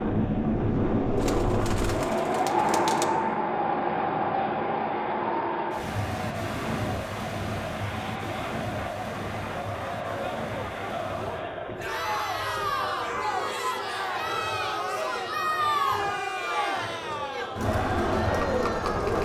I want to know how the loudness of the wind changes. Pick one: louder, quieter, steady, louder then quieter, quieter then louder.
quieter.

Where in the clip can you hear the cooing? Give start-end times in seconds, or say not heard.
1.1-3.0.